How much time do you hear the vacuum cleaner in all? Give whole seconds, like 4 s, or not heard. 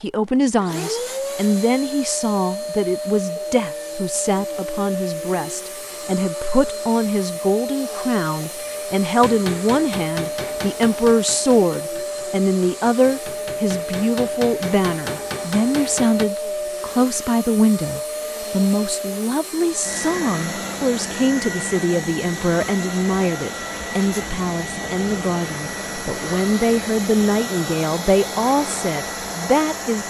30 s.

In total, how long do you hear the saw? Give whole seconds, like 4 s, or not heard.
not heard.